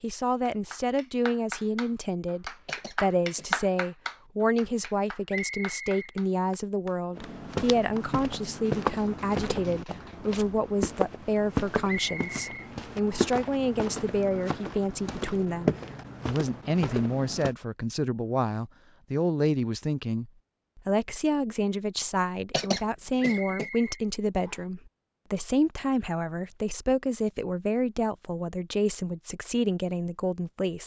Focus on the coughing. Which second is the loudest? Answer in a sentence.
The volume of the coughing peaks at 23 seconds.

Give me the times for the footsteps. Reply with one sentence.
You can hear the footsteps from 7.2 to 17.6 s.